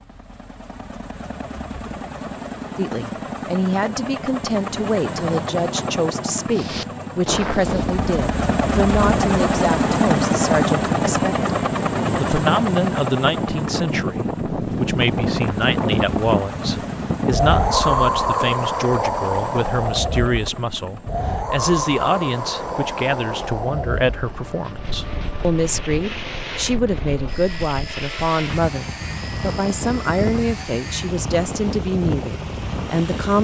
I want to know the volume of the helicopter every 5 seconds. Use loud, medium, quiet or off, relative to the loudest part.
medium, loud, loud, medium, quiet, quiet, quiet.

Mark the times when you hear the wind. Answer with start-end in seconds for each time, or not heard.
6.5-33.4.